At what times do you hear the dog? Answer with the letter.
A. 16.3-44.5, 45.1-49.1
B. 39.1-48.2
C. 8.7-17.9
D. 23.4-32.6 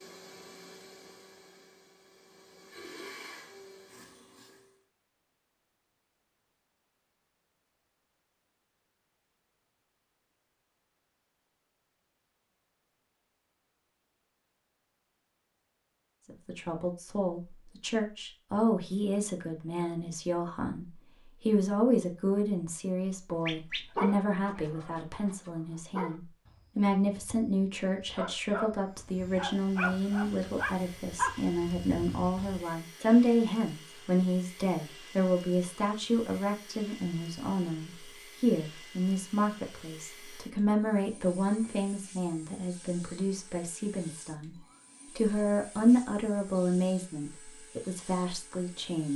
D.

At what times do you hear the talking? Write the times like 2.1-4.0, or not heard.
16.3-44.5, 45.1-49.1.